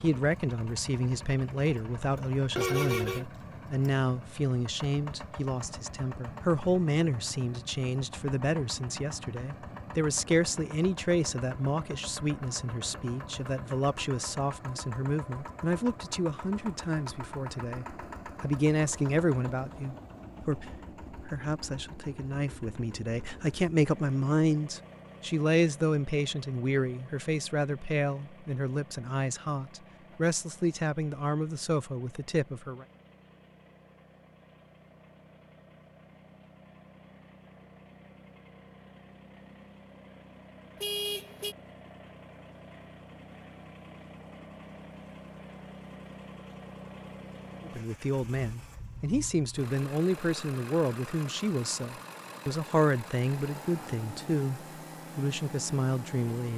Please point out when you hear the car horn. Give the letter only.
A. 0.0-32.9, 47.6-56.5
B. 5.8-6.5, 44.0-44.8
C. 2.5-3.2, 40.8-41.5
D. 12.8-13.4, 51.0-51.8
C.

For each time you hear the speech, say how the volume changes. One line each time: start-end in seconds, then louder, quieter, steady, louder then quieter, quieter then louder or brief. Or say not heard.
0.0-32.9 steady
47.6-56.5 steady.